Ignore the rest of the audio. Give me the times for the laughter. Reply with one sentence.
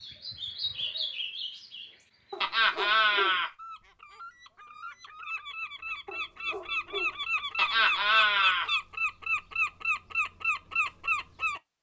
You can hear the laughter from 2.4 to 3.5 s and from 7.5 to 8.7 s.